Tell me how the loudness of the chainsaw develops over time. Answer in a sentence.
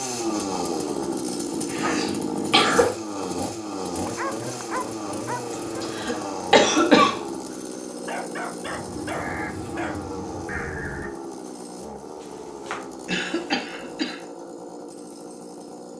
The volume of the chainsaw goes down.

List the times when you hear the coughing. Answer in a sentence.
The coughing can be heard from 1.7 to 2.9 s, from 5.5 to 7.2 s and from 13.1 to 14.2 s.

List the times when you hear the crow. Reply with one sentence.
You can hear the crow from 8.7 to 11.1 s.